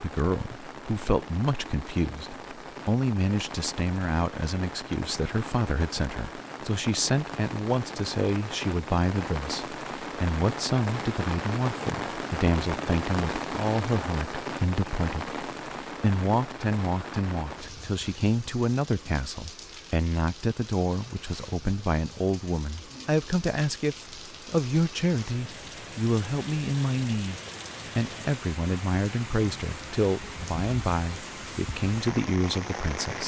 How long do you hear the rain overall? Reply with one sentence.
The rain can be heard for 33 seconds in total.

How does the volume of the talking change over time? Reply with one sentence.
The volume of the talking stays about the same.